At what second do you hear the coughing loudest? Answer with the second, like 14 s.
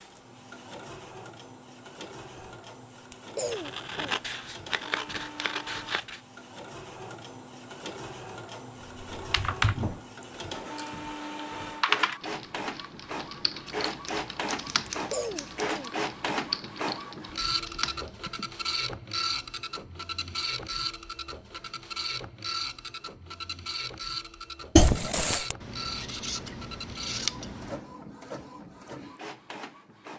25 s.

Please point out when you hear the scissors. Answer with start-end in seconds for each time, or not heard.
3.5-6.2, 13.7-15.7, 25.6-27.8.